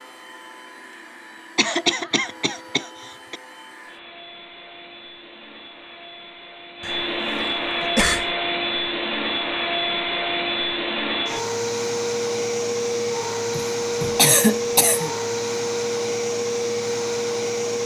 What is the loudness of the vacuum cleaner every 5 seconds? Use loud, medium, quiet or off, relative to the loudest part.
quiet, loud, loud, loud.